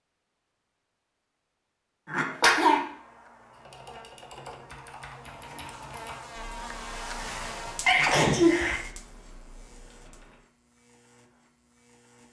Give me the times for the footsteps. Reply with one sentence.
The footsteps can't be heard in this clip.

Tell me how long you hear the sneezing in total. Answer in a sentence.
You can hear the sneezing for 2 seconds altogether.